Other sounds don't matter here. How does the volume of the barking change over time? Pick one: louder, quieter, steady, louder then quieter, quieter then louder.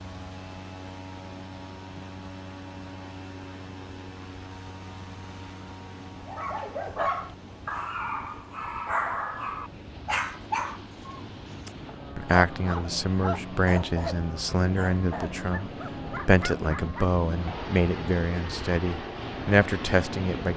quieter.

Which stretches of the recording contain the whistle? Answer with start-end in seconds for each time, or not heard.
not heard.